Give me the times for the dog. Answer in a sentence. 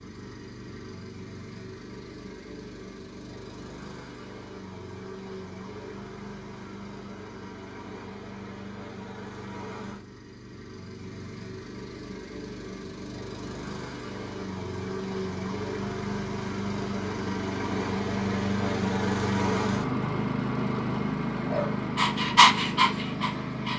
You can hear the dog from 21.5 to 23.7 s.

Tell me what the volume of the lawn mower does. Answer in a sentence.
The volume of the lawn mower goes up.